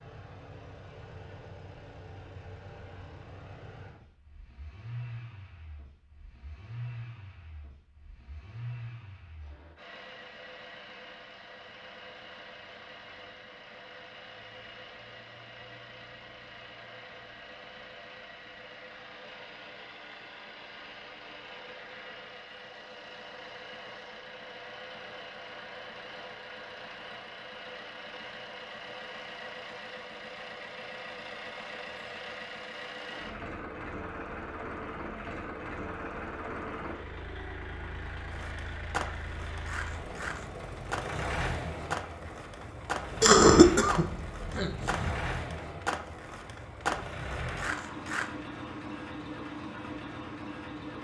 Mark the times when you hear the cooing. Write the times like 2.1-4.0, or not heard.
not heard.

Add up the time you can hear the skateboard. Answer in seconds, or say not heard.
10 s.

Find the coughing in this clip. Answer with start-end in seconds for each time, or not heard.
43.2-45.1.